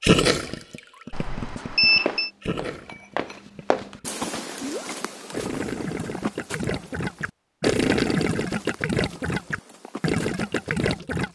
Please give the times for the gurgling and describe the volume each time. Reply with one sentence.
You can hear the gurgling from 0.0 to 11.3 s, getting louder.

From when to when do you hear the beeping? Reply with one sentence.
You can hear the beeping from 1.1 to 2.3 s.